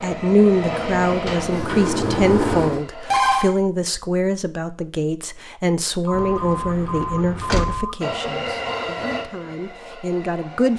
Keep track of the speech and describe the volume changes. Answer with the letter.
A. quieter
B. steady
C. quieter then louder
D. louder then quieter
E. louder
A.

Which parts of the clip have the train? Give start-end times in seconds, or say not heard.
0.0-3.1, 8.0-10.7.